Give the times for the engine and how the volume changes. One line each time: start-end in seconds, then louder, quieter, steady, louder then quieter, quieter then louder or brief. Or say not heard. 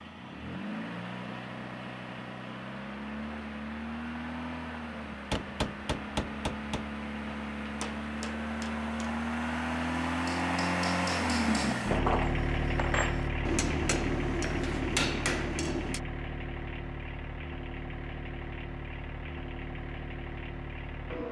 0.0-21.2 louder then quieter.